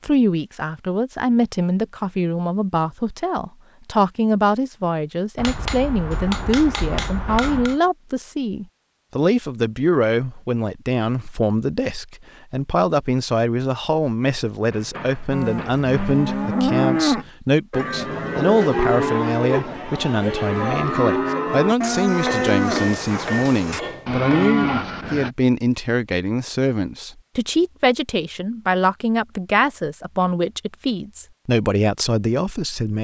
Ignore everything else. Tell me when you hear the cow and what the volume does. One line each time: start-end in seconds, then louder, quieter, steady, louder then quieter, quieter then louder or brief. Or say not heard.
15.3-25.3 steady.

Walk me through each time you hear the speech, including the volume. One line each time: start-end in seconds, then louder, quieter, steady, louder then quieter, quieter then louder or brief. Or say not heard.
0.0-32.9 steady.